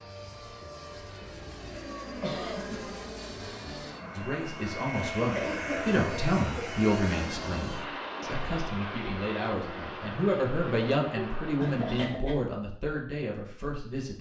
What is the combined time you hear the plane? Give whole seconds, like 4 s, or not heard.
12 s.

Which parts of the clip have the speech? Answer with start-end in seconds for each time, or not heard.
4.1-14.1.